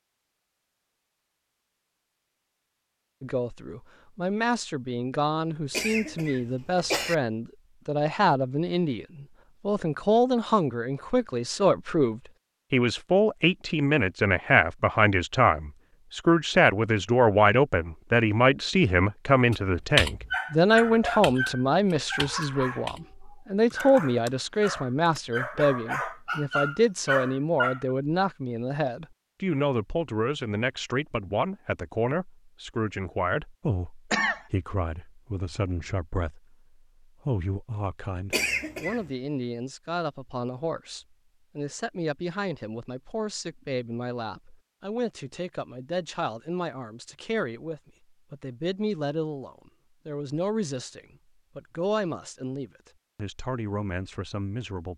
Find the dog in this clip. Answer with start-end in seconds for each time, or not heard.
20.3-27.8.